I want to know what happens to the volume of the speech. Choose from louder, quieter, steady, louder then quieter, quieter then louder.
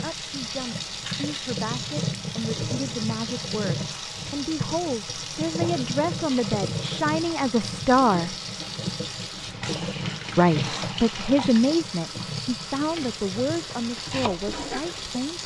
louder then quieter.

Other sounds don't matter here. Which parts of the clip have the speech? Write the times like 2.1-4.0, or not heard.
0.0-8.3, 10.3-15.4.